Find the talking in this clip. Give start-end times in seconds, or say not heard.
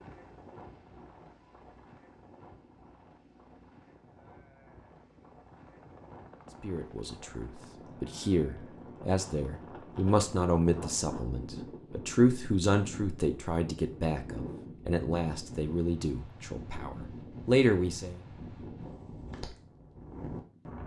6.6-18.2.